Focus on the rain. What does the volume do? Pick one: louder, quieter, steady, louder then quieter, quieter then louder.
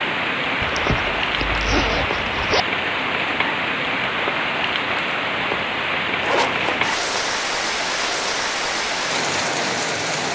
steady.